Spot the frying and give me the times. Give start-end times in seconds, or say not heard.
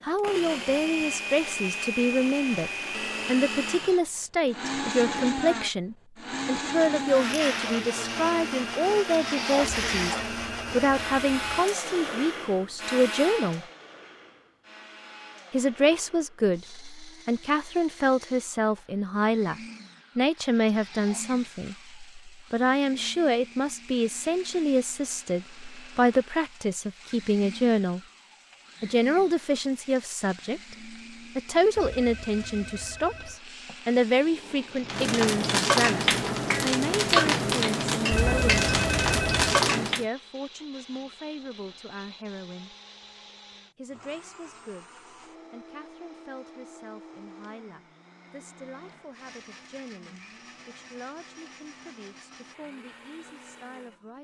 7.0-10.3, 20.3-40.0.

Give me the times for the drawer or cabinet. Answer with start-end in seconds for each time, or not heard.
not heard.